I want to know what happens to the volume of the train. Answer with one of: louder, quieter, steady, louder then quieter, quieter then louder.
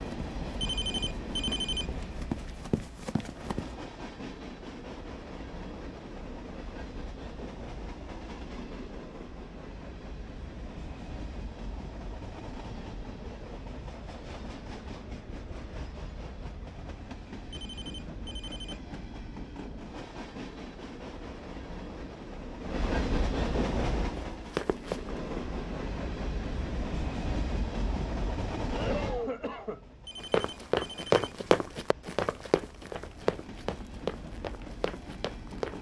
louder then quieter.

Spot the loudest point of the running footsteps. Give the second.
31 s.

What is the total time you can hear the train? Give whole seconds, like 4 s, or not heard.
36 s.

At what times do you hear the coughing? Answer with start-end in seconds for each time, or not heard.
28.7-29.9.